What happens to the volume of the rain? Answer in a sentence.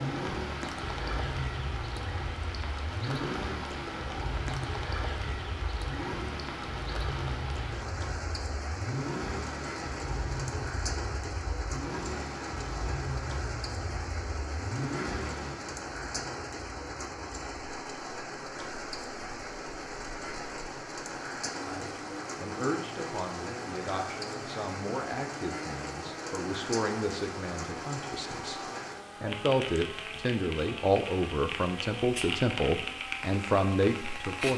The loudness of the rain stays about the same.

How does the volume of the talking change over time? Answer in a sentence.
The volume of the talking goes up.